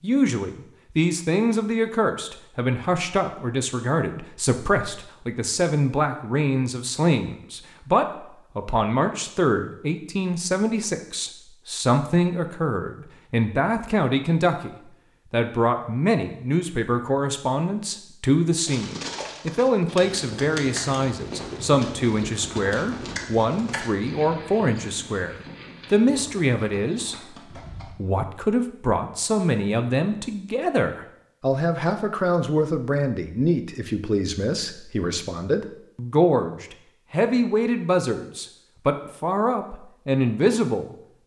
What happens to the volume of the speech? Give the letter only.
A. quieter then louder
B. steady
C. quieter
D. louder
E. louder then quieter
B.